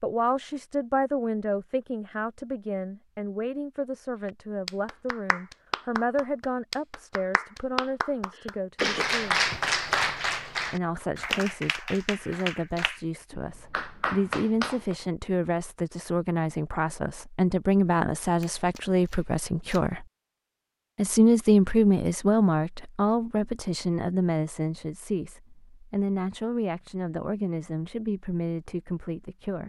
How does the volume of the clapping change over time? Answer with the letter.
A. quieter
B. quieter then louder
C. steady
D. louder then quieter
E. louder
D.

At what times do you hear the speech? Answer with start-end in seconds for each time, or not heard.
0.0-9.4, 10.7-20.1, 20.9-29.6.